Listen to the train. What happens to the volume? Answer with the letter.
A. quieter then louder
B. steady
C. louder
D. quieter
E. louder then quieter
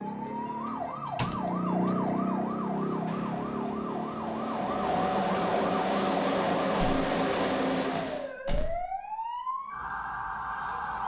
C.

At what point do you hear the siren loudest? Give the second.
2 s.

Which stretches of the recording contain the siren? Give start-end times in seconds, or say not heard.
0.0-11.0.